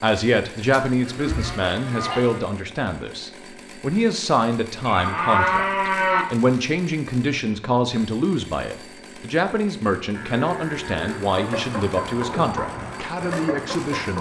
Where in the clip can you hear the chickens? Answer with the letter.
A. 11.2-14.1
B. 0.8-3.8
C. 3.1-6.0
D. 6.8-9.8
A.